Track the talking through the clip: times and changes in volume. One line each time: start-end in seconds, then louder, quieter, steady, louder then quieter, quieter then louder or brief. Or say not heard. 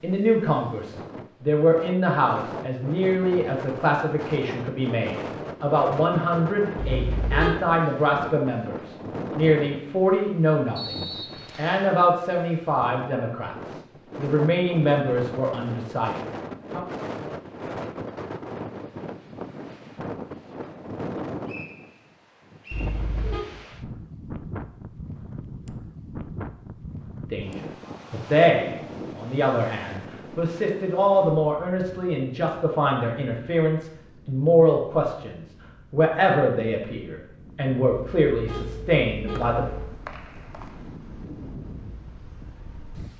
0.0-16.9 steady
27.3-39.6 steady.